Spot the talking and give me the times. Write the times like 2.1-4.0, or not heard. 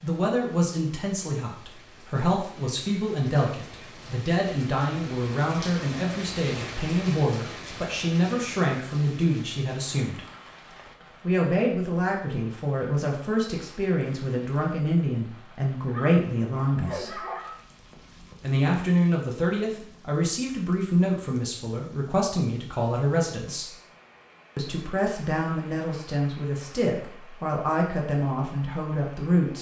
0.0-10.2, 11.2-17.2, 18.4-23.8, 24.6-29.5.